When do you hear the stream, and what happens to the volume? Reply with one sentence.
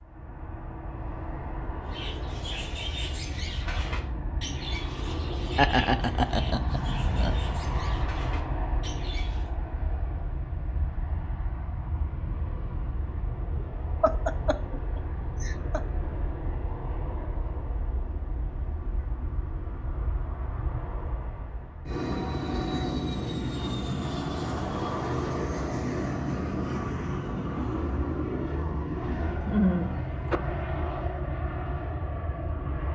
You can't hear the stream here.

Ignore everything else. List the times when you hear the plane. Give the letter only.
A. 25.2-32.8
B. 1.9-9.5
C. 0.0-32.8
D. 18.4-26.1
C.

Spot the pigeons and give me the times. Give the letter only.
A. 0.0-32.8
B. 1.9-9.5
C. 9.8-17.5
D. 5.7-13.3
B.